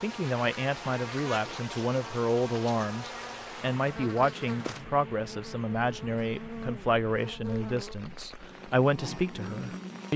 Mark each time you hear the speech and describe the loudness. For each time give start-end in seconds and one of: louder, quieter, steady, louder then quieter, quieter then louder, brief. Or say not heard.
0.0-10.1 steady.